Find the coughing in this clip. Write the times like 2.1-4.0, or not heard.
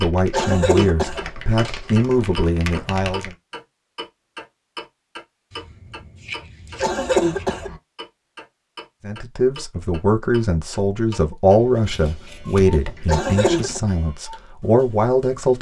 0.3-1.3, 6.8-7.8, 13.1-13.8.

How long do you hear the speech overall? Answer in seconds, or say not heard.
10 s.